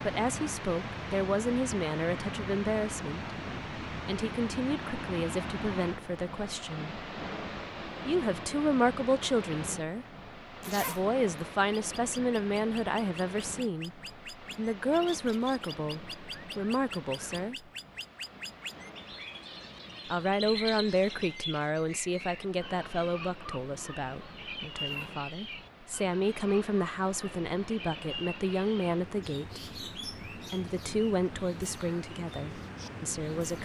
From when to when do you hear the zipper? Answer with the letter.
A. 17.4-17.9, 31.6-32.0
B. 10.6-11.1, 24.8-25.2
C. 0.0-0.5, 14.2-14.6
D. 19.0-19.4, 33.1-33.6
B.